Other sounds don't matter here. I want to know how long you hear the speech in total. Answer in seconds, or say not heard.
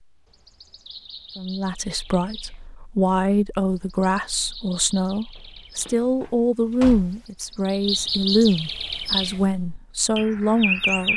10 s.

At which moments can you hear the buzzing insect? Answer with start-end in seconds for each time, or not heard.
not heard.